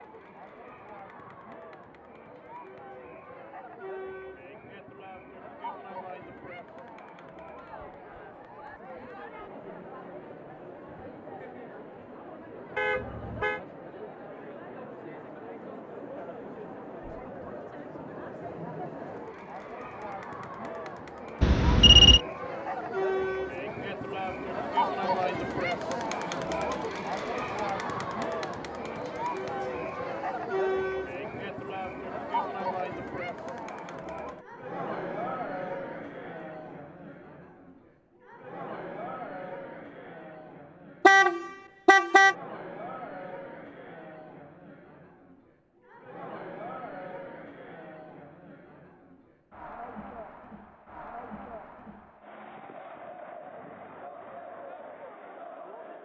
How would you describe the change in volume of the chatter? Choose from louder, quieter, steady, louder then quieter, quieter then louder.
louder then quieter.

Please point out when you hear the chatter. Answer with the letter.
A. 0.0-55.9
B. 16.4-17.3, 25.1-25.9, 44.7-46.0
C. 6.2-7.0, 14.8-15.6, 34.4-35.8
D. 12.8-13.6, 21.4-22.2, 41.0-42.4
A.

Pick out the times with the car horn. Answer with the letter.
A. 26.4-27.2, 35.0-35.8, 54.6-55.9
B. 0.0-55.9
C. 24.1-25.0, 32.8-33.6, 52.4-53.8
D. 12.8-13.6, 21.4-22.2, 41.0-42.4
D.